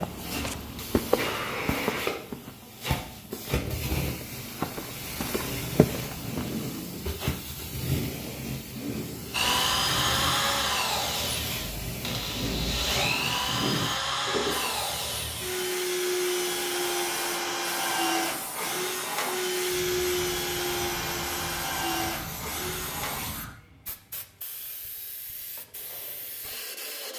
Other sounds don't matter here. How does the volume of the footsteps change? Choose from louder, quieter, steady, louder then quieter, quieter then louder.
quieter then louder.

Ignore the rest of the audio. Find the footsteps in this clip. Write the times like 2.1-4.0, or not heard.
0.0-6.5.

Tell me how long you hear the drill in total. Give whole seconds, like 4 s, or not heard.
14 s.